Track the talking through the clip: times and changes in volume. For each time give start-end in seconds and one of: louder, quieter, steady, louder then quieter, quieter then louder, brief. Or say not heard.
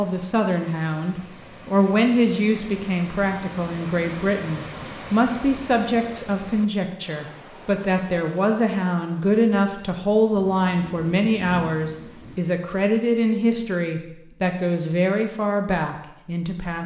0.0-16.8 steady.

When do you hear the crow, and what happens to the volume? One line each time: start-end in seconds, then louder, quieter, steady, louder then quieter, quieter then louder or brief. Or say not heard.
not heard.